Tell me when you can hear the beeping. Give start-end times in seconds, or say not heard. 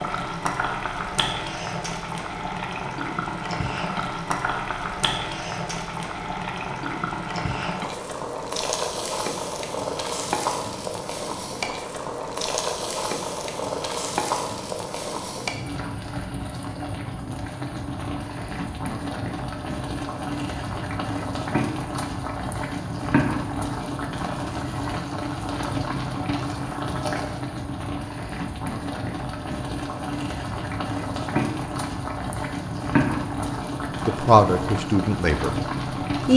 not heard.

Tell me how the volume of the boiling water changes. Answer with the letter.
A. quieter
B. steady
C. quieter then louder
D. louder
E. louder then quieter
B.